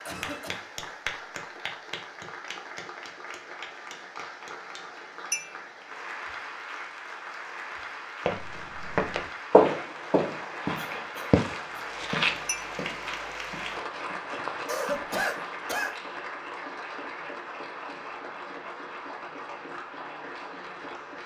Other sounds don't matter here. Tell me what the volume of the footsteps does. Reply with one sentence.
The volume of the footsteps goes down.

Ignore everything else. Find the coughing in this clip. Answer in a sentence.
The coughing can be heard from 0.1 to 0.7 s, from 10.8 to 11.9 s and from 14.7 to 15.9 s.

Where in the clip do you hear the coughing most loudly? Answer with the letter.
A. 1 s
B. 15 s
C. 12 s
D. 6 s
B.